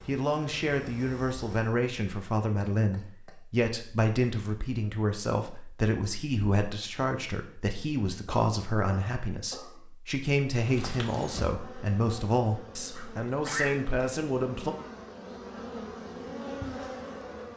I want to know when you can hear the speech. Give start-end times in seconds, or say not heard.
0.1-14.8.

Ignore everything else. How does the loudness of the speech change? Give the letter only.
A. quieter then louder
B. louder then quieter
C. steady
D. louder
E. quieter
C.